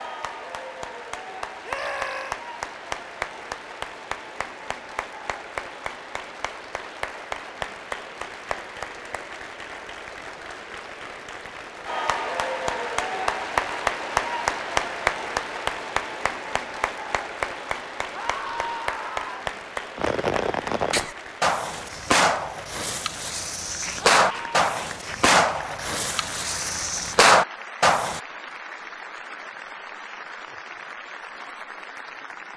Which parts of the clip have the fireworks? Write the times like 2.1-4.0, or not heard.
19.9-28.2.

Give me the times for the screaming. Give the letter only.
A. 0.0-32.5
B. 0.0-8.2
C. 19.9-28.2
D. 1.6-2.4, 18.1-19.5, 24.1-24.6
D.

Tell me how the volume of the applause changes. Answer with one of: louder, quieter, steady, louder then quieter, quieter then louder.
louder then quieter.